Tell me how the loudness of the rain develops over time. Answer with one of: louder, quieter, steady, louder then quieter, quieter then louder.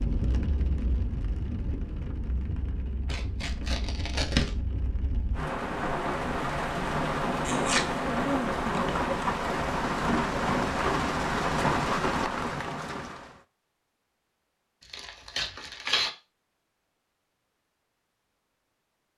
louder.